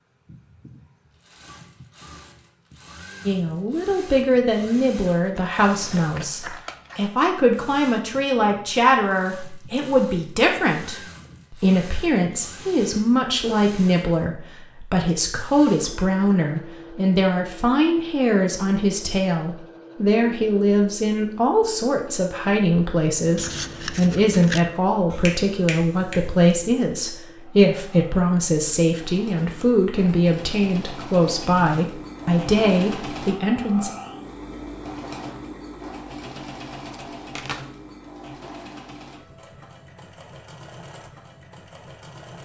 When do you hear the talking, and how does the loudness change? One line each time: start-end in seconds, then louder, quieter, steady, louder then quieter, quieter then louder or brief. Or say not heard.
3.2-33.9 steady.